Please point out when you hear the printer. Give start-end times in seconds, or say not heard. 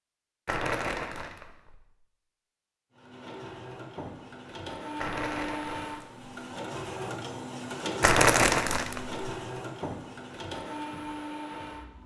2.9-12.0.